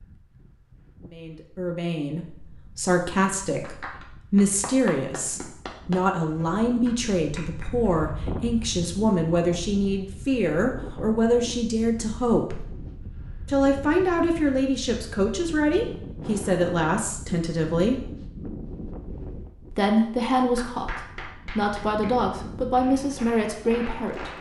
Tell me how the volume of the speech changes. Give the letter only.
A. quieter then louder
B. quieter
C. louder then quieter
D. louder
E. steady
E.